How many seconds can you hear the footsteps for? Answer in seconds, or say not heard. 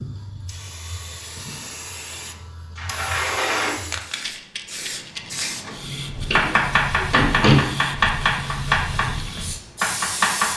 not heard.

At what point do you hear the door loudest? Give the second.
7 s.